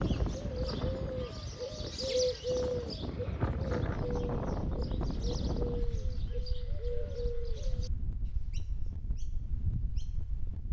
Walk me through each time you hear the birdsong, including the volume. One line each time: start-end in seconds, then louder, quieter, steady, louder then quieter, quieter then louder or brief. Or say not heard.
0.0-7.9 louder then quieter
8.5-10.3 brief.